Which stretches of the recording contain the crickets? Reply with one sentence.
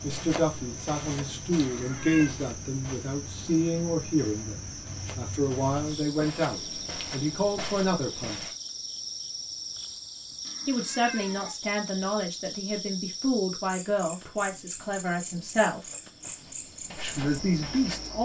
You can hear the crickets from 0.0 to 18.2 s.